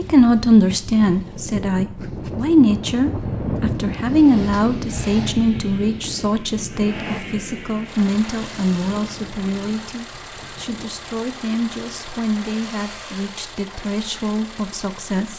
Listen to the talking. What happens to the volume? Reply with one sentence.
The volume of the talking goes down.